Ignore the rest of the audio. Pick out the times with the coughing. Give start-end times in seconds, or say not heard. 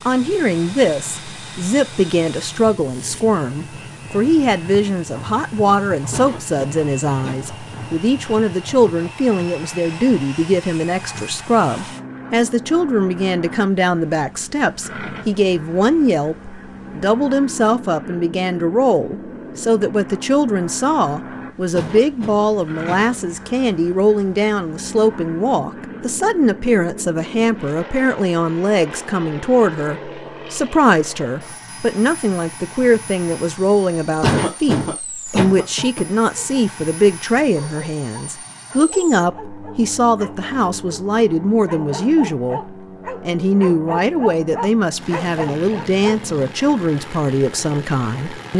6.1-7.9, 21.7-23.4, 34.2-36.0.